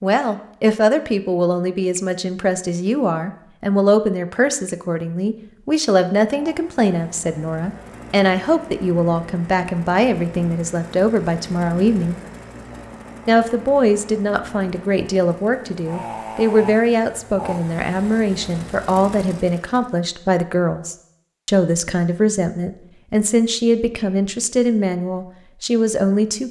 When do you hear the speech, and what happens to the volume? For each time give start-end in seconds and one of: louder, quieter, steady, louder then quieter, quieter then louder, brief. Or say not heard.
0.0-12.2 steady
13.2-26.4 steady.